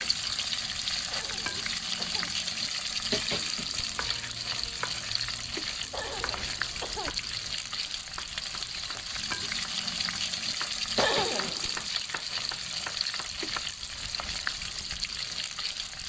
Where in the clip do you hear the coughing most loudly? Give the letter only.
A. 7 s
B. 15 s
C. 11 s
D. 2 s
C.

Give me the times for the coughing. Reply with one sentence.
The coughing can be heard from 1.1 to 2.3 s, from 5.9 to 7.2 s and from 10.9 to 11.8 s.